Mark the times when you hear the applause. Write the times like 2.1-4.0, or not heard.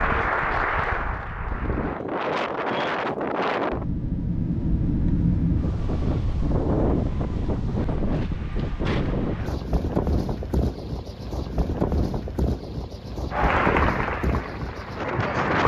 0.0-2.0, 13.3-15.6.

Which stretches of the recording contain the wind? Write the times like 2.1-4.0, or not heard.
0.0-15.6.